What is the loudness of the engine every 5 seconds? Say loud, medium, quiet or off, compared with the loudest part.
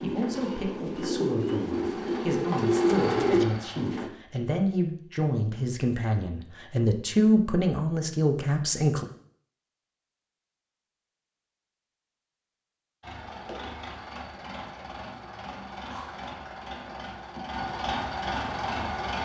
loud, off, medium, loud.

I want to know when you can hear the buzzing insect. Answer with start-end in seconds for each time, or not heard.
not heard.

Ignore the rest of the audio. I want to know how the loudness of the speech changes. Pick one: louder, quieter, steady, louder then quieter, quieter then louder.
louder.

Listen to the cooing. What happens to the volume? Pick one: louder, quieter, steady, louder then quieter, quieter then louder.
louder.